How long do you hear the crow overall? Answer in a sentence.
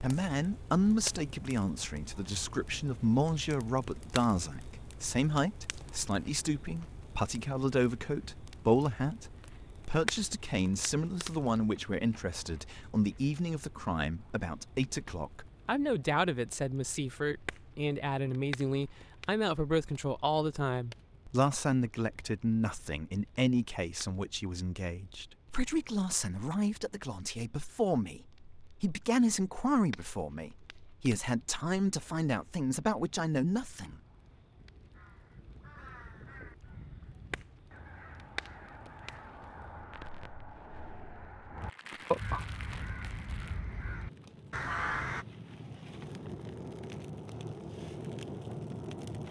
You can hear the crow for 11 seconds altogether.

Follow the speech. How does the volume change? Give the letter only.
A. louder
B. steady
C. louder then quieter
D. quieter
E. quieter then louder
B.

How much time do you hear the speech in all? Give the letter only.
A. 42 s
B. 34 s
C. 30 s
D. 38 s
B.